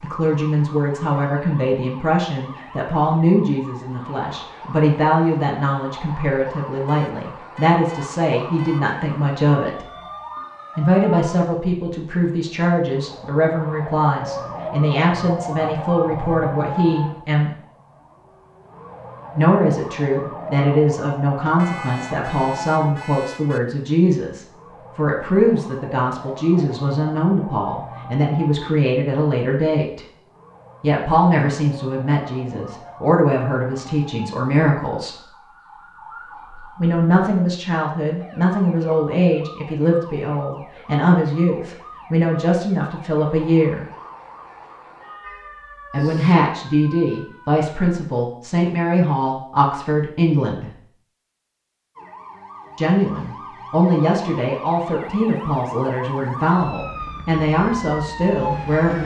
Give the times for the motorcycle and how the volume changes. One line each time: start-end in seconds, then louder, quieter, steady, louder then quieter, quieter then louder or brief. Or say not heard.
not heard.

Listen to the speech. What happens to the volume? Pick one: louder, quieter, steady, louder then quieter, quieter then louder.
steady.